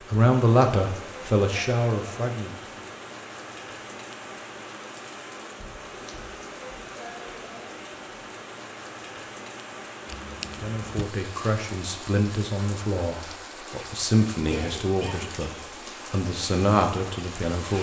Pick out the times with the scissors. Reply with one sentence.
You can hear the scissors from 10.1 to 11.1 s.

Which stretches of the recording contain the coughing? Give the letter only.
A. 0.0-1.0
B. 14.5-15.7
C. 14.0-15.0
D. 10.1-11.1
B.